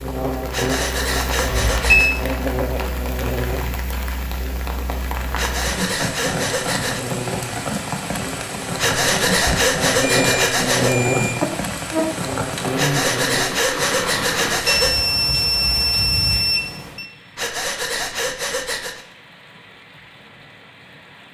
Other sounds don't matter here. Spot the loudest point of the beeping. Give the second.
2 s.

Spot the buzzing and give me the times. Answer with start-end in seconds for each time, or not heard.
0.0-13.5.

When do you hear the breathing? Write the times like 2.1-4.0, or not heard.
0.5-2.1, 5.3-7.0, 8.8-11.0, 12.8-15.0, 17.4-19.1.